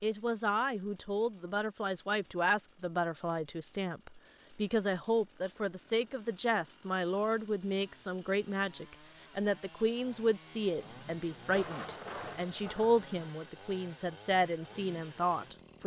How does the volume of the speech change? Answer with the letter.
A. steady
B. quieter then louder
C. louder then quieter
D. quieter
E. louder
A.